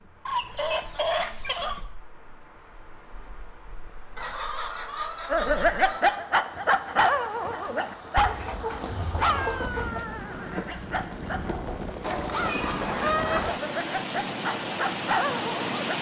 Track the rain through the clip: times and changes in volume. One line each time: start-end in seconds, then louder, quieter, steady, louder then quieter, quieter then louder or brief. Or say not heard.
0.0-15.9 louder.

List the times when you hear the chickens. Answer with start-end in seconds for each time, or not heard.
0.2-1.9, 4.2-6.2, 8.2-10.2, 12.0-13.6.